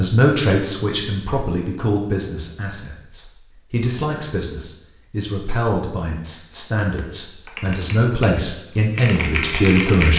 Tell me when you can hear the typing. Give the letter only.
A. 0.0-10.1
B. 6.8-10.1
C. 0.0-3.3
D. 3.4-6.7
B.